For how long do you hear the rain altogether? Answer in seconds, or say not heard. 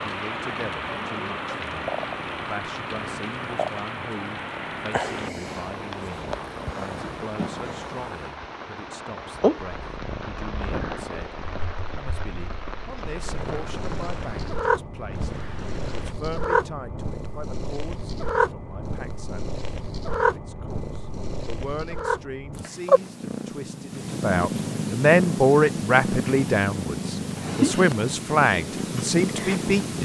16 s.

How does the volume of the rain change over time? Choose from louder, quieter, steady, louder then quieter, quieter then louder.
quieter.